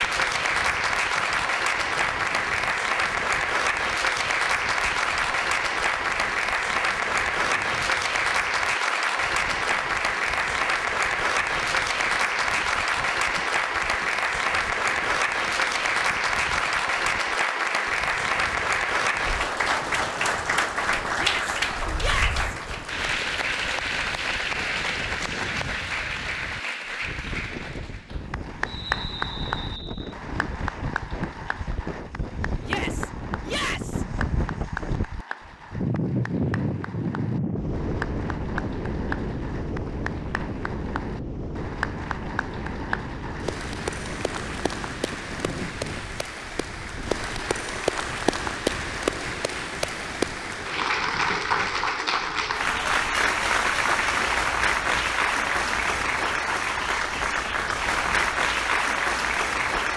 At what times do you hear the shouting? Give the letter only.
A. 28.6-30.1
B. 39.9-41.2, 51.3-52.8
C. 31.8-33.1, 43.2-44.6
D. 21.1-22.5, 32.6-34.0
D.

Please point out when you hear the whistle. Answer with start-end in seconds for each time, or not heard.
28.6-30.1.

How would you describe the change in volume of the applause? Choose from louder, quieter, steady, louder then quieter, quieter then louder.
quieter then louder.